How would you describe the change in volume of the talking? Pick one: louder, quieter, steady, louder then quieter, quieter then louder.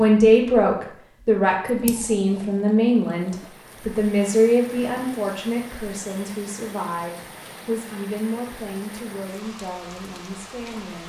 quieter.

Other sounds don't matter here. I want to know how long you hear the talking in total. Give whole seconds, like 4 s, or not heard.
11 s.